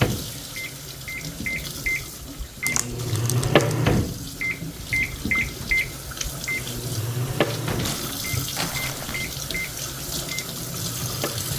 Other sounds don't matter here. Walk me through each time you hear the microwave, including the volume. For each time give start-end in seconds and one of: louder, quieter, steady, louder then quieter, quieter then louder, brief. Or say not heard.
0.0-11.5 louder then quieter.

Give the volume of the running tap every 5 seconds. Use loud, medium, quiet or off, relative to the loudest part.
medium, loud, loud.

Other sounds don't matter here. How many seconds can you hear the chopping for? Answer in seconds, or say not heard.
not heard.